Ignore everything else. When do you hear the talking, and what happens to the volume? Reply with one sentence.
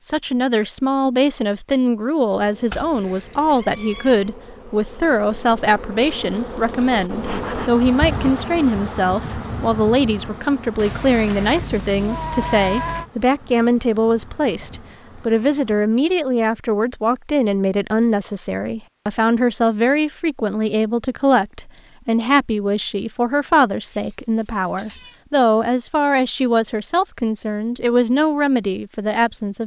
You can hear the talking from 0.0 to 29.6 s, at a steady volume.